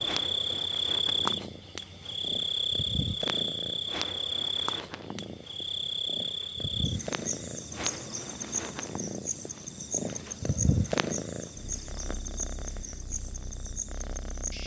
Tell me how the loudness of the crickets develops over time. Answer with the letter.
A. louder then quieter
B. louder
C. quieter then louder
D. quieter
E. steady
D.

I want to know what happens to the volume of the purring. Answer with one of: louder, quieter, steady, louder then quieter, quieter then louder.
louder then quieter.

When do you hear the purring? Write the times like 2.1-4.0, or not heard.
0.0-14.6.